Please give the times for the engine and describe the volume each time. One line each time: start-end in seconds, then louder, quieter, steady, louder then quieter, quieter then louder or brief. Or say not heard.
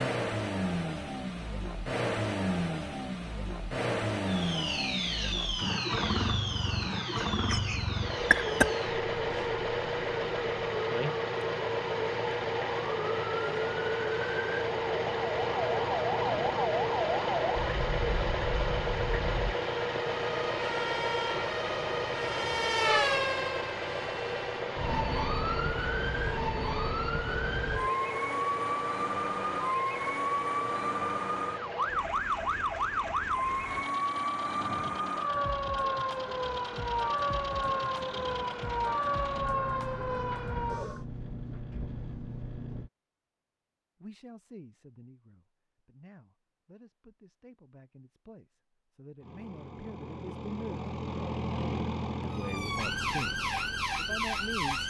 0.0-42.9 quieter
49.2-54.8 louder then quieter.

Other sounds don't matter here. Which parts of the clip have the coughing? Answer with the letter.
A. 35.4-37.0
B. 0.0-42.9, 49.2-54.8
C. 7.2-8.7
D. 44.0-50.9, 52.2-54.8
C.